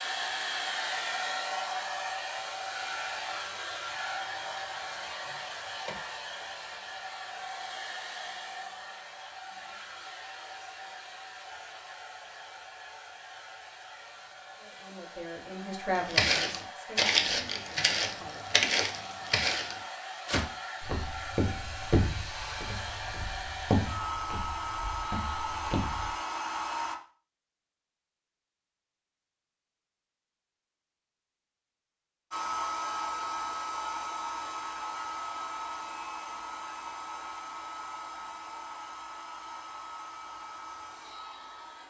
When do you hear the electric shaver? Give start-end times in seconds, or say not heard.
not heard.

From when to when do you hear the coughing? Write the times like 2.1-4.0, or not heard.
not heard.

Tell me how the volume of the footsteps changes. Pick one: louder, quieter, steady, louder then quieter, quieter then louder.
quieter.